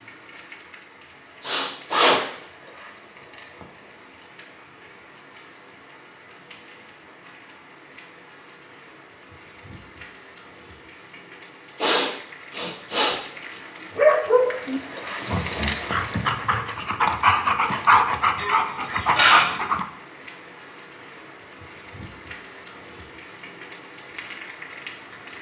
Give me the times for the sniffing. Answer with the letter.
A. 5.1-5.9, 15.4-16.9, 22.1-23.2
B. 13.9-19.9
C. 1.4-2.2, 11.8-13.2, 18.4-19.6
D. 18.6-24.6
C.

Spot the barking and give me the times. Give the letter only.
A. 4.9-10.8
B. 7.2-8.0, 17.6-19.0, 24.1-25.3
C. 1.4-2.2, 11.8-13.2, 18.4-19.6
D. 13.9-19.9
D.